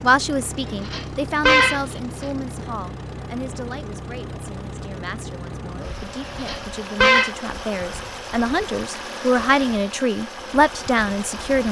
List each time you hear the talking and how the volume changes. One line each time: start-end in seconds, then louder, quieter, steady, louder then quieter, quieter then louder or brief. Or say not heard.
0.0-11.6 quieter then louder.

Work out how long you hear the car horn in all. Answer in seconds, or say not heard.
2 s.